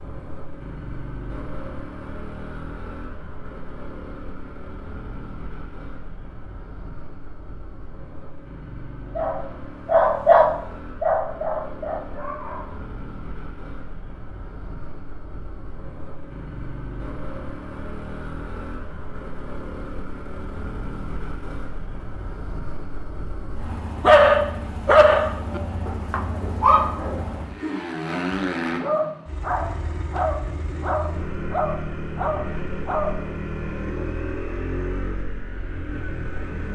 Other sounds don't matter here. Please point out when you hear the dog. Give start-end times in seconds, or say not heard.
9.2-12.7, 24.0-33.1.